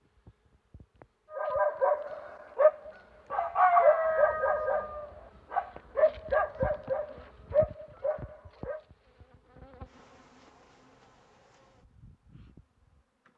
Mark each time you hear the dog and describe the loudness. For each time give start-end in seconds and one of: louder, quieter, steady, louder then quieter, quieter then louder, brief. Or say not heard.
1.4-8.8 quieter.